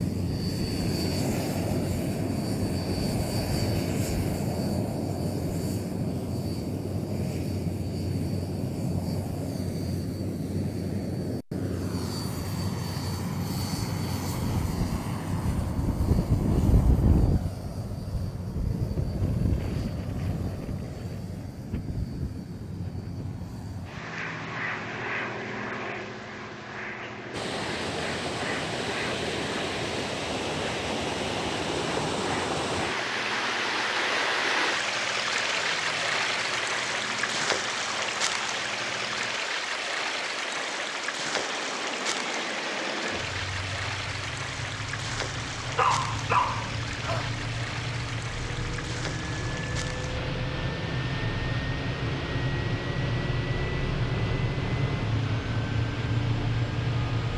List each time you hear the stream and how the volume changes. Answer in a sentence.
The stream can be heard from 27.3 to 57.3 s, getting quieter.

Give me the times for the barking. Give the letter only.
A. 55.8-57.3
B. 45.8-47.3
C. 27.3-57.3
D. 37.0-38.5
B.